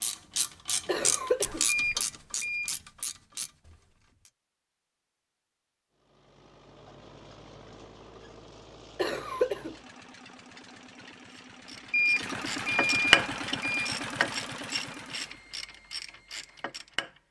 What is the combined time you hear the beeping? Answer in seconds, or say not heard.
3 s.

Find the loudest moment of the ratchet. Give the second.
13 s.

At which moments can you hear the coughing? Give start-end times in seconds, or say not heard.
0.8-1.6, 8.9-9.8.